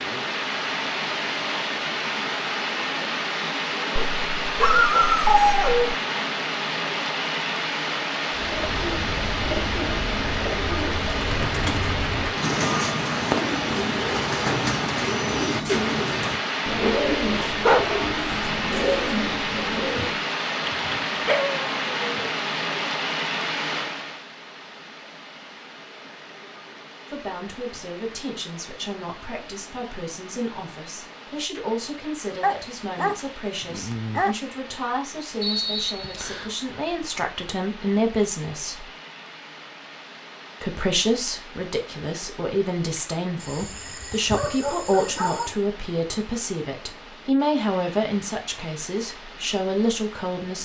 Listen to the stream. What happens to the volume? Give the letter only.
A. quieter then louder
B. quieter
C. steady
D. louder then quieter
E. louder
B.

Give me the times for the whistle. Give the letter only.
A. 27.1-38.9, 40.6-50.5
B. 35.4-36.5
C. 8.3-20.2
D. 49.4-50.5
B.